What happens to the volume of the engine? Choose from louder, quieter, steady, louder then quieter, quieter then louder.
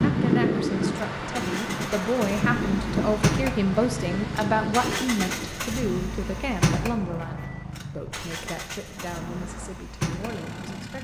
louder then quieter.